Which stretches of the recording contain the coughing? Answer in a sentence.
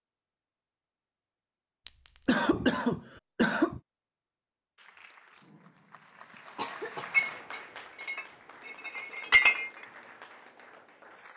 You can hear the coughing from 2.2 to 3.8 s and from 6.3 to 7.1 s.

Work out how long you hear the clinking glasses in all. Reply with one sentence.
You can hear the clinking glasses for 3 seconds altogether.